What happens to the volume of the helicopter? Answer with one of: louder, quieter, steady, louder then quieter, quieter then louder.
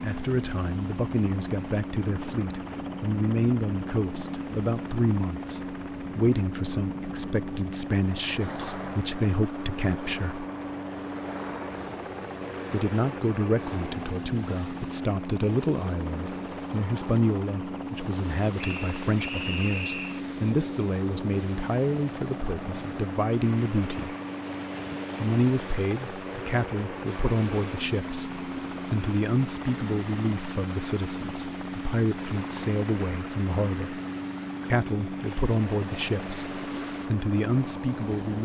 steady.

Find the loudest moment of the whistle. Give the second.
20 s.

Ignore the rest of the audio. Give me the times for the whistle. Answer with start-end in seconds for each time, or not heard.
18.6-20.2.